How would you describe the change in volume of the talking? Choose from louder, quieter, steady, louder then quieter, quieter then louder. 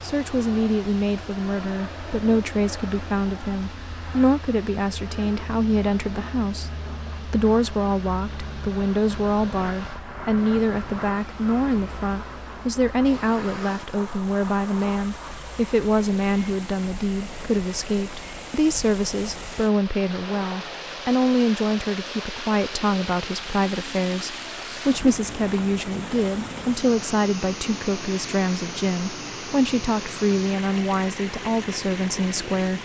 steady.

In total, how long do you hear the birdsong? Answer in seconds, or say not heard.
not heard.